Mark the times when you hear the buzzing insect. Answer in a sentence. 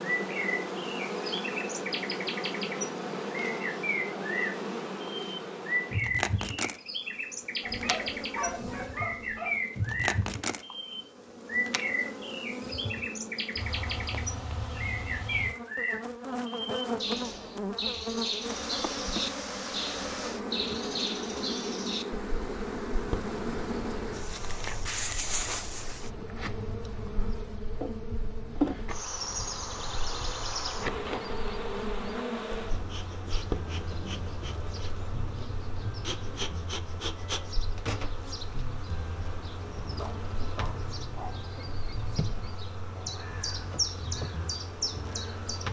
You can hear the buzzing insect from 0.0 to 45.6 s.